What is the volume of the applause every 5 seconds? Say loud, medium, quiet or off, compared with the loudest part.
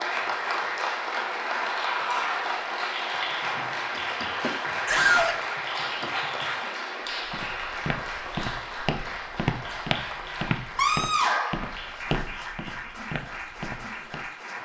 loud, loud, medium.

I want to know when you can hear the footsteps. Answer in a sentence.
The footsteps can be heard from 7.2 to 14.3 s.